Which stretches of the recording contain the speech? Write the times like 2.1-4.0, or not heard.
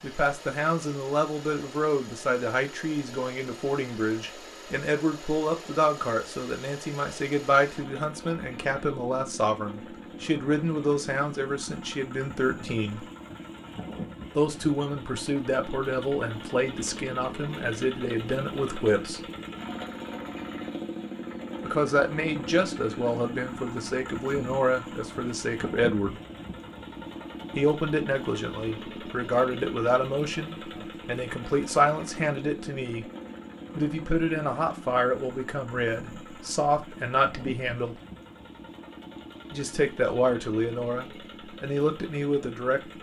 0.0-13.1, 14.3-19.2, 21.6-26.2, 27.6-33.0, 33.8-38.0, 39.5-42.8.